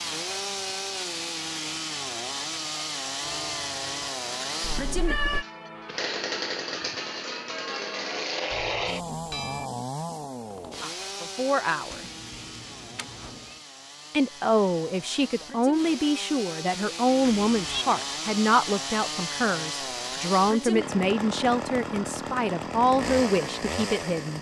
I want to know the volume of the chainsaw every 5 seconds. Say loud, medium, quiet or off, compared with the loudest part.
loud, loud, medium, loud, loud.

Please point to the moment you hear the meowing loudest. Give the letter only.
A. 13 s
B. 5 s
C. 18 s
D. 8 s
B.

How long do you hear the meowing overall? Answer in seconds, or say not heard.
3 s.